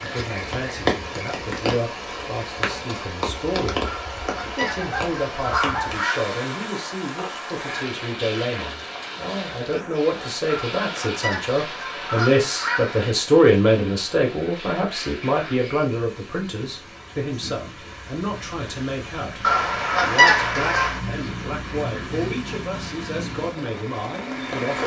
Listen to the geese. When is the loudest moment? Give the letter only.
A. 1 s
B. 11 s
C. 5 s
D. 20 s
D.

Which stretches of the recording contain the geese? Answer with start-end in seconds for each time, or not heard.
3.8-6.3, 10.4-13.1, 19.4-21.0.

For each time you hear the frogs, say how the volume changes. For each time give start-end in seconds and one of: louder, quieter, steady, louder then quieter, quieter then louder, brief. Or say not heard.
not heard.